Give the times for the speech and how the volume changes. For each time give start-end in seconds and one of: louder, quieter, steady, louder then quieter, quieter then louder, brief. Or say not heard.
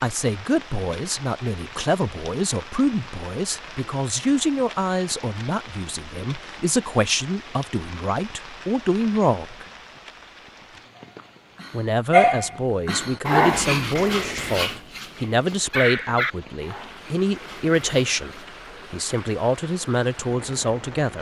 0.0-9.7 steady
11.7-21.1 steady.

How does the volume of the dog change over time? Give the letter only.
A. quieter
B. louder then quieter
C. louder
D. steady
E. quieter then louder
A.